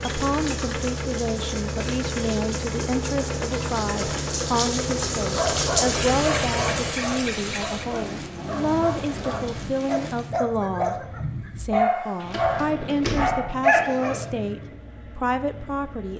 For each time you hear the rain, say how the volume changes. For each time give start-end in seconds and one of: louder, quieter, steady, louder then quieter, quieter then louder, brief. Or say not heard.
0.0-10.3 louder then quieter.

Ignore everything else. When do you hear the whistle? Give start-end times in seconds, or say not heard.
not heard.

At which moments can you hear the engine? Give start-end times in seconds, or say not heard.
0.0-16.1.